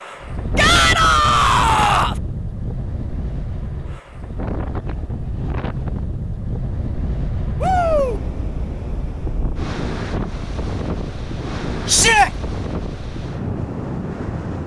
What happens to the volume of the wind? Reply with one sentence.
The loudness of the wind stays about the same.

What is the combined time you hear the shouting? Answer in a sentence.
You can hear the shouting for 3 seconds altogether.